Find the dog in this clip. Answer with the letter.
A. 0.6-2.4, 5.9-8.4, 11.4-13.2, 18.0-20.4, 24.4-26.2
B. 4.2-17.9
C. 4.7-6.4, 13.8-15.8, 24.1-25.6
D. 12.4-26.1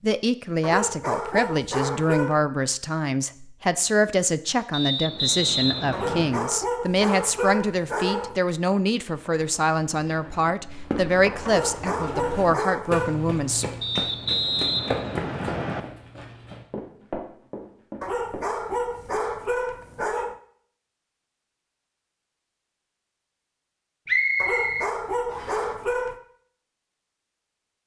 A.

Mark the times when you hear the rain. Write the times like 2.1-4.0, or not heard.
not heard.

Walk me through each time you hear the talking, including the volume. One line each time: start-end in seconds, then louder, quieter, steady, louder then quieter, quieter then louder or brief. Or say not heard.
0.0-13.7 steady.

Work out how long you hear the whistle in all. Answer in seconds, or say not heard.
5 s.